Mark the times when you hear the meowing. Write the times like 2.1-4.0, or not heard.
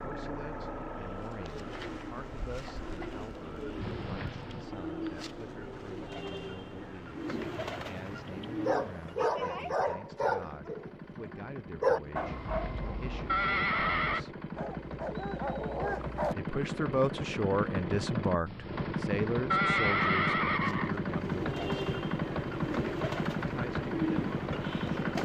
not heard.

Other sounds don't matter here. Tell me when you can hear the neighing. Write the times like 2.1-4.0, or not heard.
3.8-4.7, 12.2-14.2, 18.4-21.0.